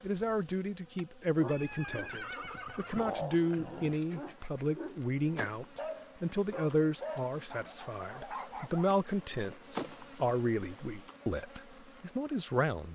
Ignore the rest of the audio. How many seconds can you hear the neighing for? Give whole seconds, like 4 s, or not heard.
2 s.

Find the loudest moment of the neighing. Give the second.
3 s.